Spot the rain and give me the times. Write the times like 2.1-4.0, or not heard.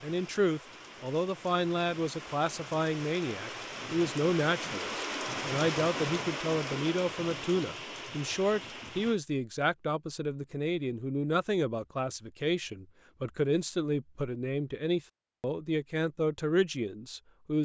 0.0-9.2.